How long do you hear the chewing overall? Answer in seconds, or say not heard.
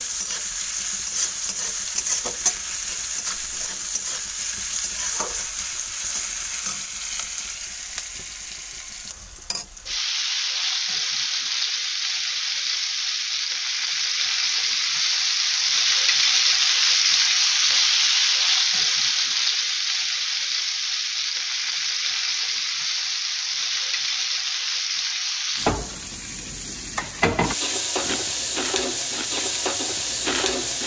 3 s.